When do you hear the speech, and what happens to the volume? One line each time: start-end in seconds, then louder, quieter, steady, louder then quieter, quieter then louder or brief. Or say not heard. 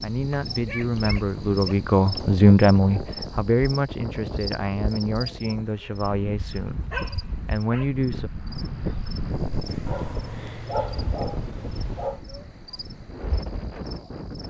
0.0-8.3 louder then quieter.